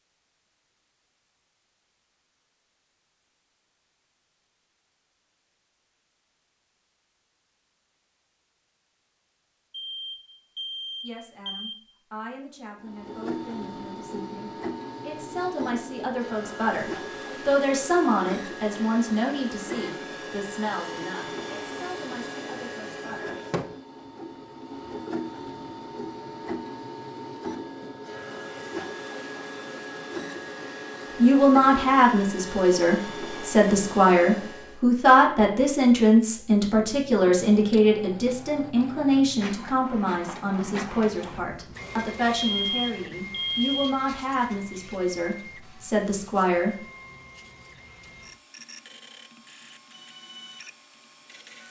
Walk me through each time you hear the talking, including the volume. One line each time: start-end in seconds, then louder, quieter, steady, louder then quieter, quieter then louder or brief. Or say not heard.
11.0-23.3 louder then quieter
31.1-46.8 quieter.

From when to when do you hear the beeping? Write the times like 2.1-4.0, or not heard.
9.7-11.8, 42.4-44.0.